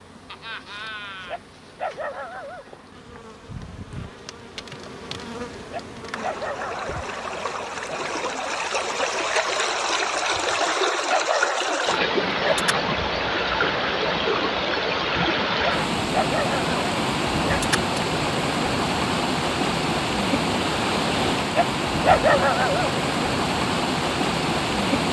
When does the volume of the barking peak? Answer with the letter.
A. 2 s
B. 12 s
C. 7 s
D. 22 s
D.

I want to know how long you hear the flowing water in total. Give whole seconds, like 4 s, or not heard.
19 s.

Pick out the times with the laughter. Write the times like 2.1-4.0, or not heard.
0.2-1.4.